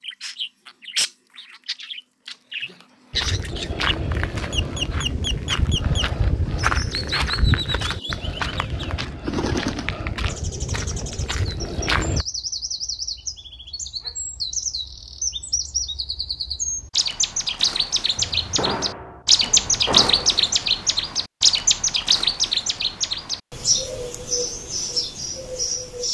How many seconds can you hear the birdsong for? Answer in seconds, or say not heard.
26 s.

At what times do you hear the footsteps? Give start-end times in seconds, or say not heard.
3.1-12.2.